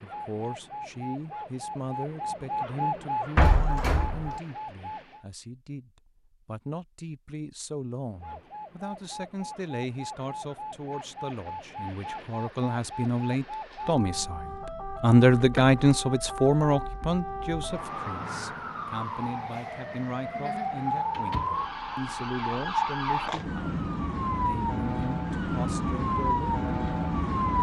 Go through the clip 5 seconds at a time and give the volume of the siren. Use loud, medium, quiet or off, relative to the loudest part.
medium, quiet, medium, medium, loud, loud.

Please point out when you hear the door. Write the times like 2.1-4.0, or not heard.
3.4-4.4, 15.4-15.8, 20.8-22.3.